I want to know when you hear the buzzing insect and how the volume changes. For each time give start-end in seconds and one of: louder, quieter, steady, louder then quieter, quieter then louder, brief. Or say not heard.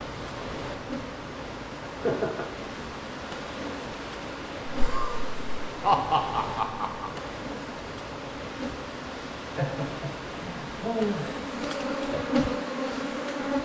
0.0-13.6 louder.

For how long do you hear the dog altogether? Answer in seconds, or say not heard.
not heard.